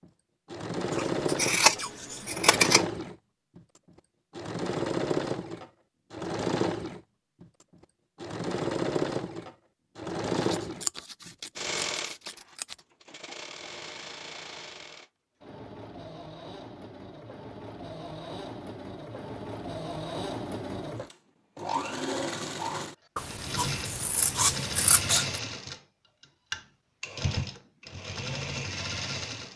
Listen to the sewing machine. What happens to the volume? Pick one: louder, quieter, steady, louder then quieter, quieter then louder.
quieter then louder.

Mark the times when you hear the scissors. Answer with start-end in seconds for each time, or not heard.
0.9-2.9, 10.3-12.8, 23.1-25.4.